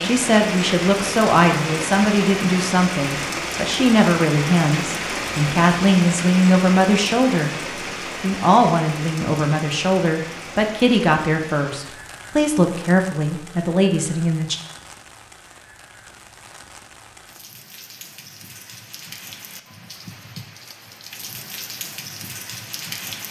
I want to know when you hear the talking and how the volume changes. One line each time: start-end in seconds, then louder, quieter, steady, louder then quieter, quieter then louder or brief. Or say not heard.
0.0-14.6 steady.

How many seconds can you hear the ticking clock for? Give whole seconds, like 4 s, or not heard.
not heard.